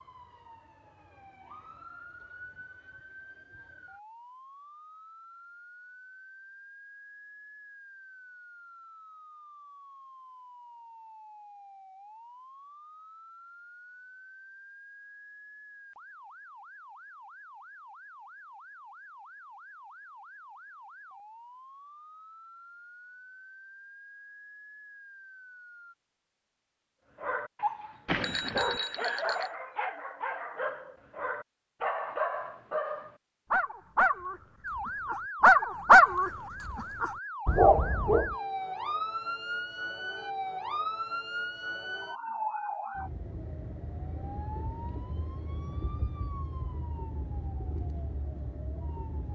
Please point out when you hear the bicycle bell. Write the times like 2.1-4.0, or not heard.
28.1-29.5.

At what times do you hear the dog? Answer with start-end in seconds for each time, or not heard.
27.2-38.4.